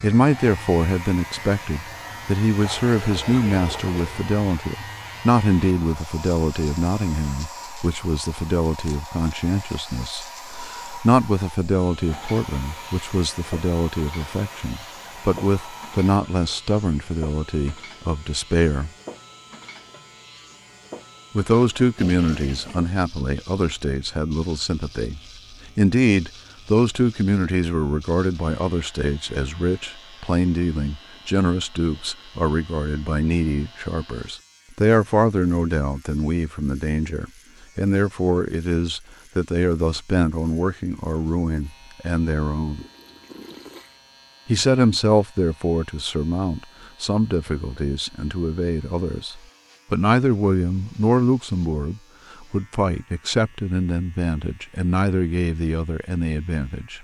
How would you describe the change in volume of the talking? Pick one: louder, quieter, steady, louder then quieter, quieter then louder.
steady.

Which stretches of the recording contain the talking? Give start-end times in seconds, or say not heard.
0.0-18.9, 21.4-42.9, 44.5-56.9.